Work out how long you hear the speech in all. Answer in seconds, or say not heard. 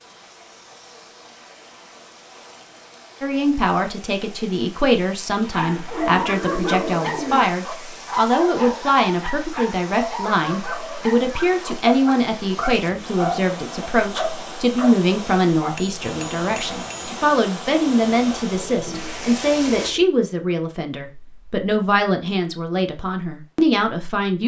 21 s.